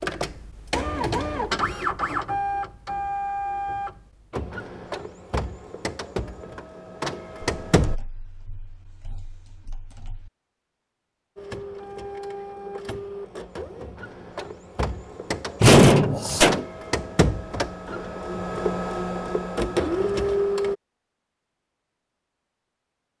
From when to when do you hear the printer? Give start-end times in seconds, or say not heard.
0.0-8.0, 11.3-20.8.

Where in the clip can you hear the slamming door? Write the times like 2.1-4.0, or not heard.
15.6-16.6.